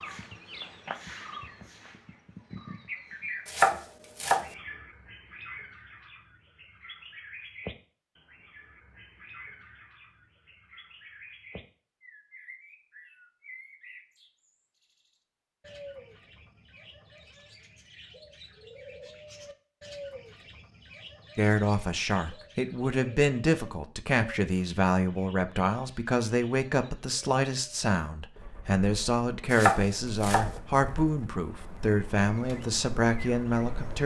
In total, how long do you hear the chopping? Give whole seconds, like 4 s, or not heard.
2 s.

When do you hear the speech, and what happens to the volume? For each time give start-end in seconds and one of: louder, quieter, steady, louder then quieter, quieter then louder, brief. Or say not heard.
21.4-34.0 steady.